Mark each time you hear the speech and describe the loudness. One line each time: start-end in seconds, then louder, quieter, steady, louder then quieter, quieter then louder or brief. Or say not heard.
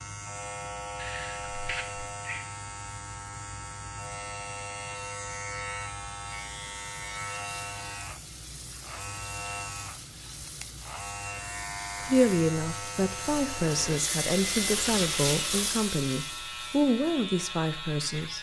12.0-18.3 steady.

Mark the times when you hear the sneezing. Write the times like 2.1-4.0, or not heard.
0.9-2.5.